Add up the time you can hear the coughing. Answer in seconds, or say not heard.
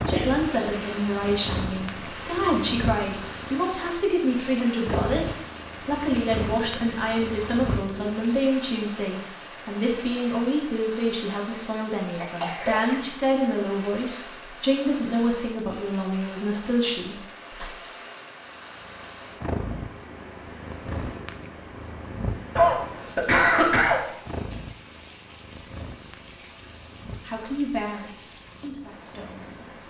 3 s.